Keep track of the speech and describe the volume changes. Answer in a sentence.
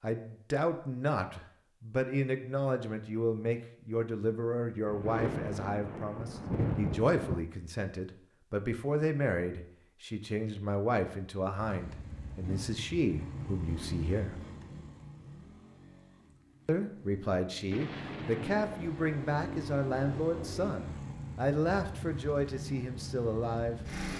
The volume of the speech stays about the same.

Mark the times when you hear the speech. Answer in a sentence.
The speech can be heard from 0.0 to 14.3 s and from 16.6 to 23.8 s.